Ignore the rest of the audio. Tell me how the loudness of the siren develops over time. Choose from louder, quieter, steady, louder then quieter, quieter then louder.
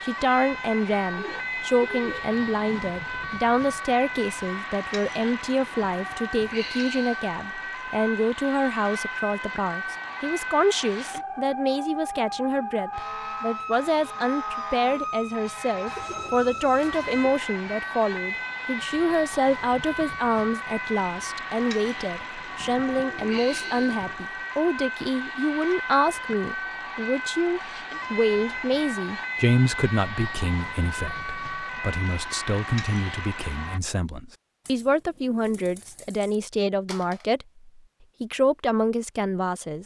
steady.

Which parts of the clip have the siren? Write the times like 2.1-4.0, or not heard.
0.0-33.8.